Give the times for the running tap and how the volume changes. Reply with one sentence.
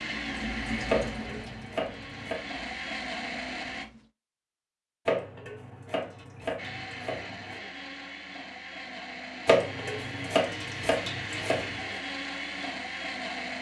You can hear the running tap from 0.0 to 4.1 s, getting quieter.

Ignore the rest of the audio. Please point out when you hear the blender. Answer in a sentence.
The blender can be heard from 0.0 to 3.9 s and from 6.5 to 13.5 s.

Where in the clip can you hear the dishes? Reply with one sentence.
The dishes can be heard from 0.8 to 2.4 s, from 5.0 to 7.6 s and from 9.4 to 11.8 s.